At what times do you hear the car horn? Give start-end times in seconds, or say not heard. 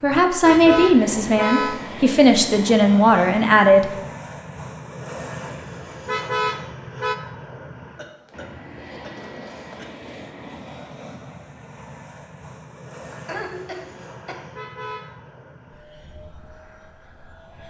0.4-1.8, 6.0-7.2, 14.5-15.2.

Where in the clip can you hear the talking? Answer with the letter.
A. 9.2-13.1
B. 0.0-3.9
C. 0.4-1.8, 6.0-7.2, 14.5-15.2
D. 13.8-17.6
B.